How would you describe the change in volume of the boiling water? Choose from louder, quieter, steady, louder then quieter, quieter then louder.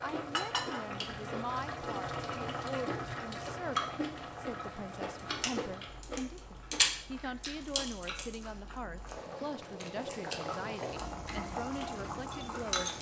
quieter then louder.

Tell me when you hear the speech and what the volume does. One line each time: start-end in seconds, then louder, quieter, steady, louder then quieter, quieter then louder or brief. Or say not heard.
0.0-12.9 steady.